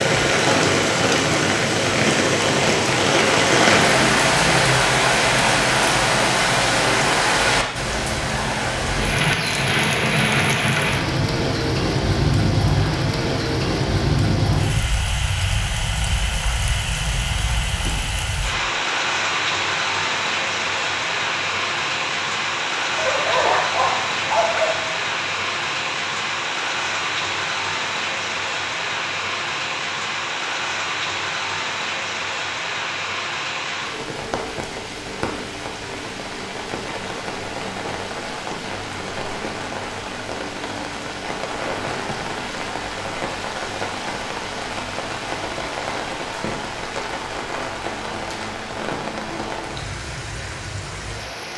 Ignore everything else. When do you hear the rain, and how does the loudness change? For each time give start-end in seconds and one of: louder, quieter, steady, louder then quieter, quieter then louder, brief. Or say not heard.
0.0-51.5 quieter.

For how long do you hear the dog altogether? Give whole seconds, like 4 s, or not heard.
2 s.